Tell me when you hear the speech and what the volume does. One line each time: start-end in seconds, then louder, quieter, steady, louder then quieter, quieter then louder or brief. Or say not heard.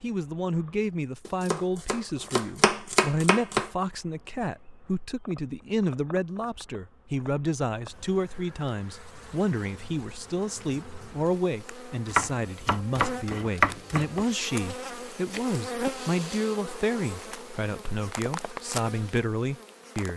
0.0-20.1 steady.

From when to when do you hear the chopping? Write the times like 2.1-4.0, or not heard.
1.2-3.7, 12.1-14.2.